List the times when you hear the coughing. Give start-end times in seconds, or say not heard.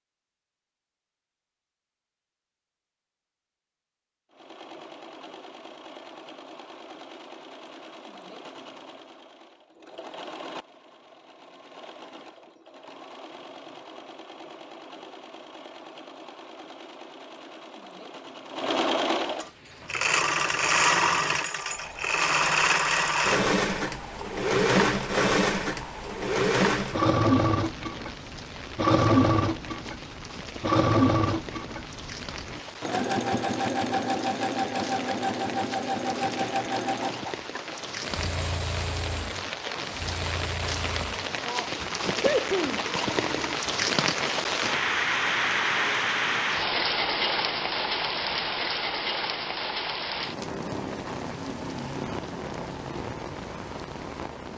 41.0-43.3.